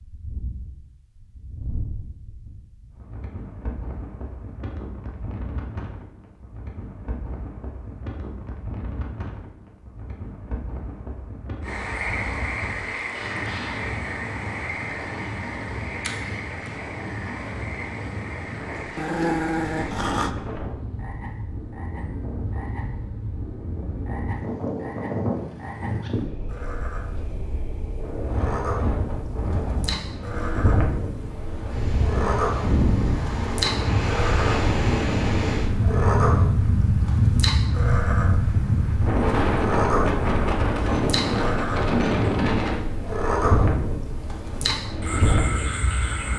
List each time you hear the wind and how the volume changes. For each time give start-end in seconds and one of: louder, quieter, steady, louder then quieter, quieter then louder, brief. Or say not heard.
0.0-46.3 louder.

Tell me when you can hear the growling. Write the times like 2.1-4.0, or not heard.
18.9-20.4.